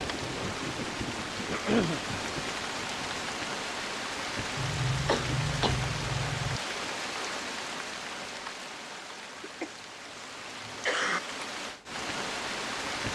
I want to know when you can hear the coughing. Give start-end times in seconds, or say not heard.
1.4-2.0, 4.5-6.6, 9.3-11.2.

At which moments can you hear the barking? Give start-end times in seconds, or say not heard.
not heard.